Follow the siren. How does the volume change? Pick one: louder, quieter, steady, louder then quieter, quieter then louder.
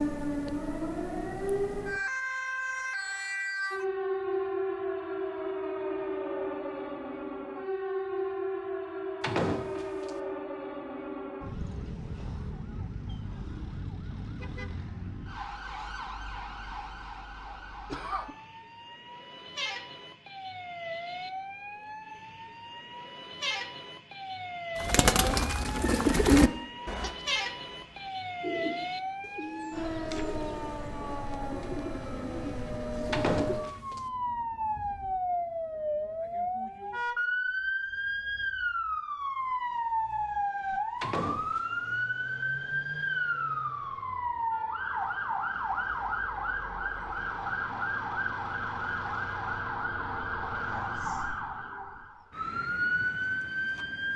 quieter then louder.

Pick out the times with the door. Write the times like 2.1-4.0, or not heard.
9.2-10.1, 33.1-34.0, 41.0-41.6.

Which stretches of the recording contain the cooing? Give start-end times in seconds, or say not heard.
24.8-33.6.